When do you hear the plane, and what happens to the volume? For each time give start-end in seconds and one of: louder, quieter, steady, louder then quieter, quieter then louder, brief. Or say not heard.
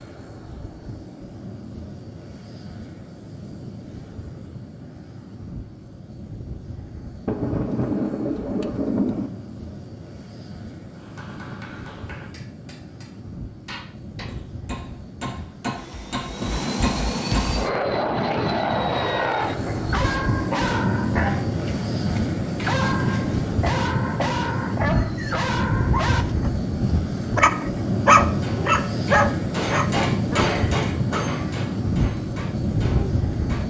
0.0-33.6 louder.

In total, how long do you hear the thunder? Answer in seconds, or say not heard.
2 s.